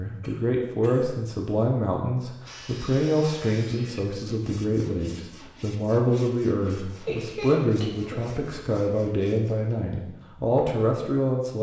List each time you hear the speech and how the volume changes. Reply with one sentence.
The speech can be heard from 0.0 to 11.5 s, at a steady volume.